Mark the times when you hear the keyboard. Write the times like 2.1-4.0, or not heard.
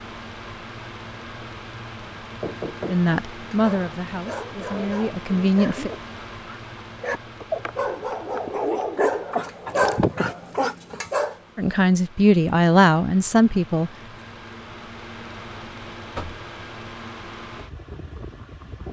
not heard.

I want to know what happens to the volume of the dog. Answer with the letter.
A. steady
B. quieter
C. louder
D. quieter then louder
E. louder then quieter
C.